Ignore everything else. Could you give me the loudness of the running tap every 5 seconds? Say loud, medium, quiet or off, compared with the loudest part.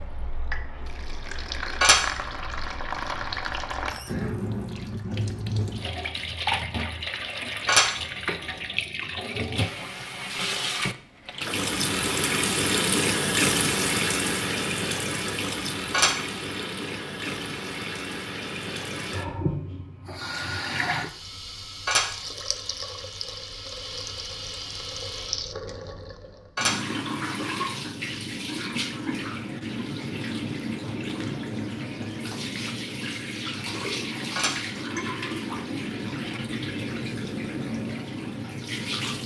medium, medium, loud, medium, medium, medium, medium, medium.